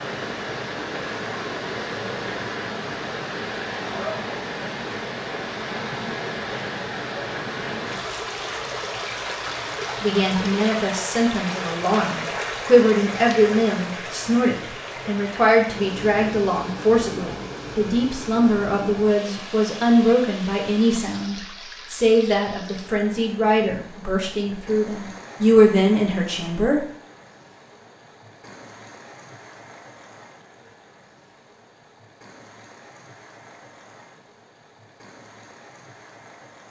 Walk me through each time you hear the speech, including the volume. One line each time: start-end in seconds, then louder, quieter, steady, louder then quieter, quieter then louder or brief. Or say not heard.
10.0-26.9 steady.